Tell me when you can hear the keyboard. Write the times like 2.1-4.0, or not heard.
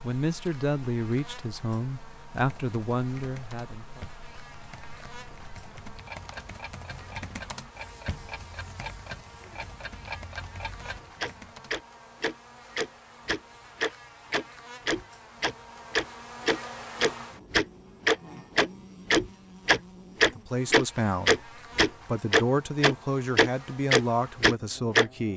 2.4-11.8.